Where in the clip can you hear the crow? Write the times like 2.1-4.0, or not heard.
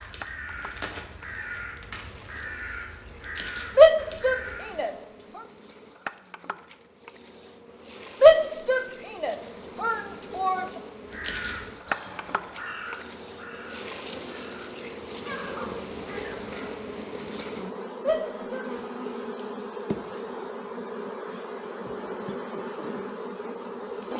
0.0-4.8, 11.1-16.8.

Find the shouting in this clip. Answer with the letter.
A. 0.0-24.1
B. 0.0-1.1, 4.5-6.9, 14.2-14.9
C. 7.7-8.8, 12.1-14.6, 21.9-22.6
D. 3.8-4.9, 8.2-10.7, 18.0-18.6
D.